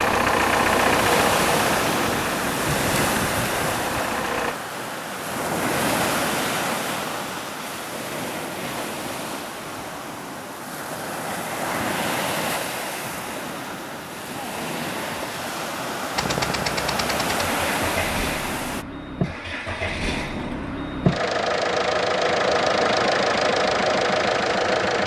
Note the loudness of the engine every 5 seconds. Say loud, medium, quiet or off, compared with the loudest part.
loud, off, off, medium, loud.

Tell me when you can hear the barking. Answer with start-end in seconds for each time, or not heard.
not heard.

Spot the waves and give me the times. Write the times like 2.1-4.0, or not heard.
0.0-18.9.